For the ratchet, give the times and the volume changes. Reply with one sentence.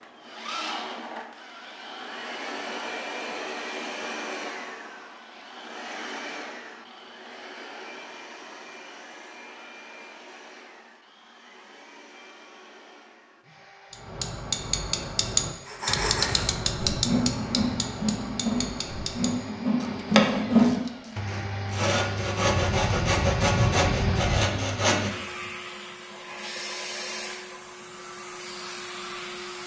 The ratchet can be heard from 13.9 to 21.1 s, getting quieter then louder.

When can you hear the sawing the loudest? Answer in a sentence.
The volume of the sawing peaks at 21 seconds.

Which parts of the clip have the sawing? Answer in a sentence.
You can hear the sawing from 15.7 to 25.1 s.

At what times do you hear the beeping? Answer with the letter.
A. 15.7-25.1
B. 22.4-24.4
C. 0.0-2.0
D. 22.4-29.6
B.